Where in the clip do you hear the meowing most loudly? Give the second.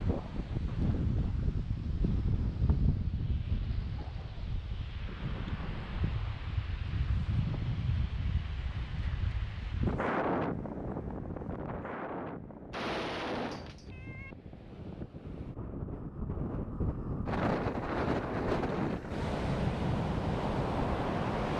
13 s.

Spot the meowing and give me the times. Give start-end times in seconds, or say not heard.
12.7-14.3.